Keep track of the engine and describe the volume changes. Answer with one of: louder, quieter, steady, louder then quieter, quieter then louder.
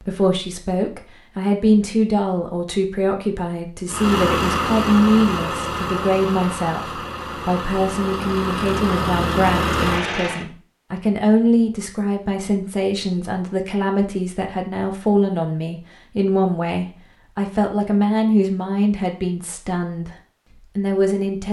quieter then louder.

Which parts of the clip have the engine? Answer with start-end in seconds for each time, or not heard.
3.9-10.4.